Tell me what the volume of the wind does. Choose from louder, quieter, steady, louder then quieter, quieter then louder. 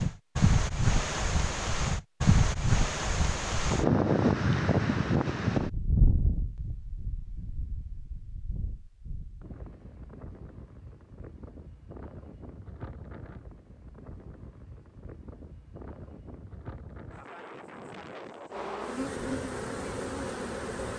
quieter.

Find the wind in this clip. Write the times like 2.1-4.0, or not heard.
0.0-20.9.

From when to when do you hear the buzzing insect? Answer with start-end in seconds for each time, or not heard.
18.5-20.9.